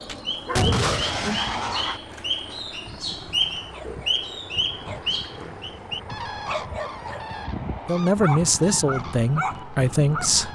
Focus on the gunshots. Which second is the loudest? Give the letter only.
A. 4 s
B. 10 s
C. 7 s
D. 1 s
D.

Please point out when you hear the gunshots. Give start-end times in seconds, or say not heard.
0.1-2.0.